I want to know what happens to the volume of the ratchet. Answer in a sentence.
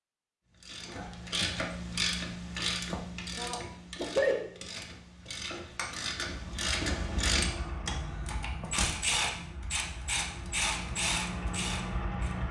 The loudness of the ratchet goes down, then up.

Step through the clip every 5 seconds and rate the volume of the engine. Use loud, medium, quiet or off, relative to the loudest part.
off, medium, loud.